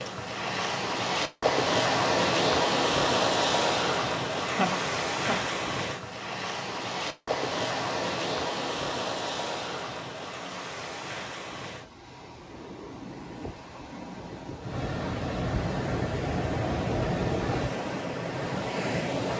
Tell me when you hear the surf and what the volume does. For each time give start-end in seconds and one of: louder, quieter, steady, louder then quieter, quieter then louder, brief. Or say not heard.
0.0-19.3 quieter then louder.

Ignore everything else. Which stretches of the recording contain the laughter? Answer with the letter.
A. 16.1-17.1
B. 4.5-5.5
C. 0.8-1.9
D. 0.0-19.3
B.